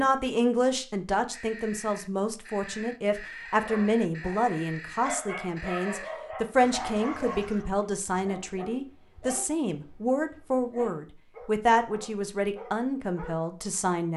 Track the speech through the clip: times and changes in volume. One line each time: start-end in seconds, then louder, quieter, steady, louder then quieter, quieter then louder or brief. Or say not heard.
0.0-14.1 steady.